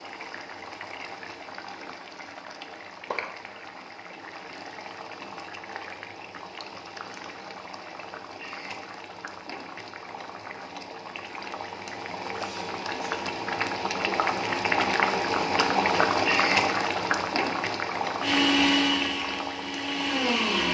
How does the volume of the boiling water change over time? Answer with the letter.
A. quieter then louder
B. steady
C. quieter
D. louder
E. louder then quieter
D.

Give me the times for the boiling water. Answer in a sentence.
The boiling water can be heard from 0.0 to 20.4 s.